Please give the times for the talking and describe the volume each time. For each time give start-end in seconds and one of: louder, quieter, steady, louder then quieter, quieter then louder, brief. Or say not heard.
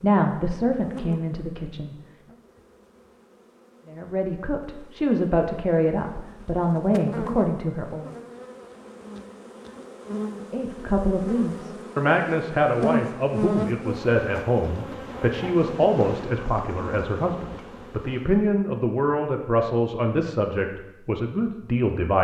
0.0-1.9 brief
3.9-8.1 louder
10.5-22.1 steady.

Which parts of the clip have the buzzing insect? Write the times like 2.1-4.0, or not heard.
0.0-18.4.